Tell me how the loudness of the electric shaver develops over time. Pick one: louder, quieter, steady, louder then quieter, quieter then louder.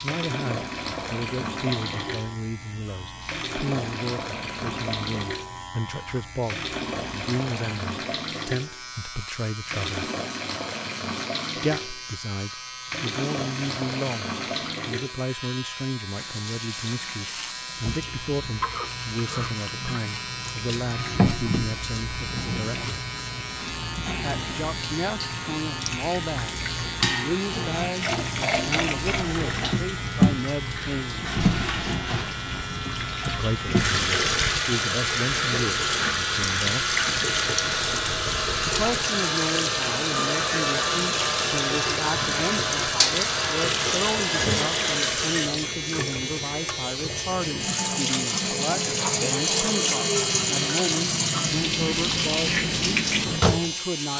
louder.